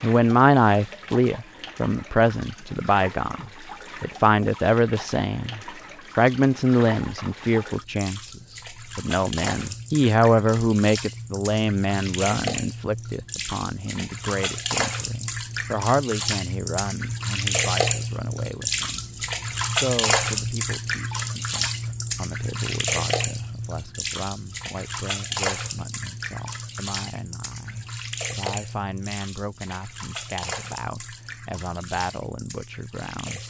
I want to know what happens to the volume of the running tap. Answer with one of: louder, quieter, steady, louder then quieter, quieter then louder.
louder then quieter.